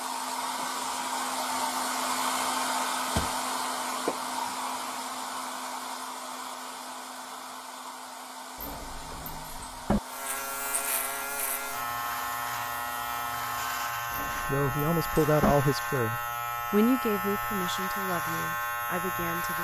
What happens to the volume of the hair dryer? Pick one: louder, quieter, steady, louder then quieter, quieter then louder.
quieter.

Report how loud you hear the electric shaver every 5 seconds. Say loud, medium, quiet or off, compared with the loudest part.
off, off, loud, loud.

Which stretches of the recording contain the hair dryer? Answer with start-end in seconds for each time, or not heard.
0.0-13.9.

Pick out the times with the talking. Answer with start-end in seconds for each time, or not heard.
14.4-19.5.